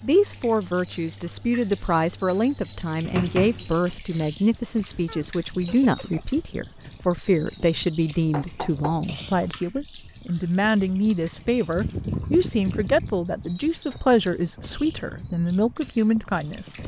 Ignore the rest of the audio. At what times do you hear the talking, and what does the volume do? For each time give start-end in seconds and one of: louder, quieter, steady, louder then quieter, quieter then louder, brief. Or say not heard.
0.0-16.7 steady.